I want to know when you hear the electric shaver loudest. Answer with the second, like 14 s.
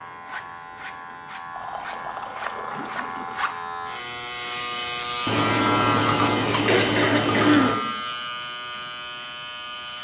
6 s.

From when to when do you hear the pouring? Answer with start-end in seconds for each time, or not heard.
1.5-3.4, 5.2-7.8.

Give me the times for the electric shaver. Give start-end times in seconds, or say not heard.
0.0-10.0.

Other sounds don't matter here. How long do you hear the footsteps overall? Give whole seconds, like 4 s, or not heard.
not heard.